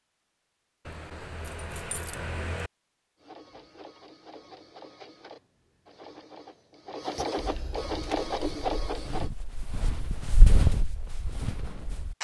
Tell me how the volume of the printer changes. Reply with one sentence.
The volume of the printer goes up.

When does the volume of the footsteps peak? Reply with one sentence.
The volume of the footsteps peaks at 11 seconds.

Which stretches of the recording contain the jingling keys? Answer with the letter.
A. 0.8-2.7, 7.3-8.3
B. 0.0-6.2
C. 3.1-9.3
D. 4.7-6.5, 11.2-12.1
A.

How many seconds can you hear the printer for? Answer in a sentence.
The printer can be heard for 6 seconds in total.